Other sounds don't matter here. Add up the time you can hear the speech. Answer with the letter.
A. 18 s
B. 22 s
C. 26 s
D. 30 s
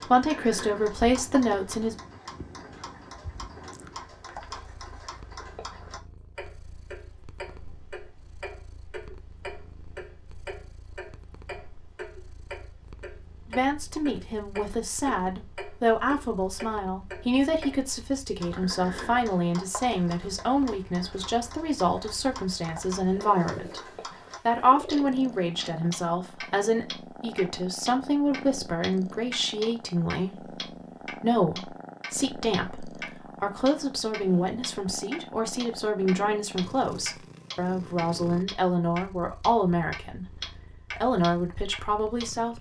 D.